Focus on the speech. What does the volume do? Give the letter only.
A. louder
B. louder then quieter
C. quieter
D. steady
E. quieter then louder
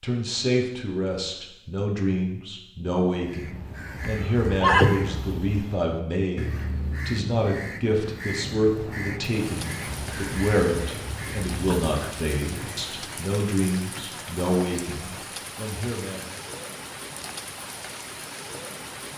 D.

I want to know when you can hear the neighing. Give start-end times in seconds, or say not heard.
4.0-5.2.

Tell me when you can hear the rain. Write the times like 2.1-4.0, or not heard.
9.2-19.1.